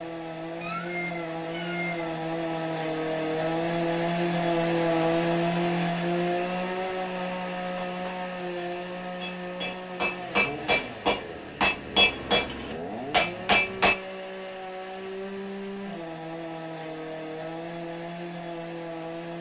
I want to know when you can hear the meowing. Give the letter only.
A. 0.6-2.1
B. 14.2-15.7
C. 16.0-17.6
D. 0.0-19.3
A.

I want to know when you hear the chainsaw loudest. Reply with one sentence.
The volume of the chainsaw peaks at 5 seconds.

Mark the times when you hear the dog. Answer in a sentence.
You can't hear the dog here.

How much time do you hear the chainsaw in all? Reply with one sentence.
The chainsaw can be heard for 19 seconds in total.